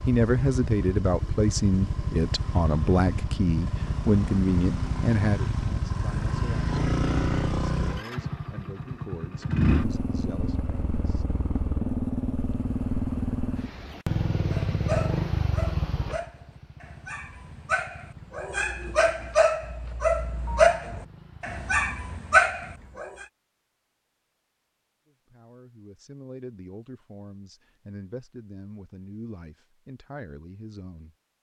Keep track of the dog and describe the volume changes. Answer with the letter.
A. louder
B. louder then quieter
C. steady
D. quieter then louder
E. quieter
A.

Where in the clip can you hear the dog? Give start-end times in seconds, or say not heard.
14.5-23.2.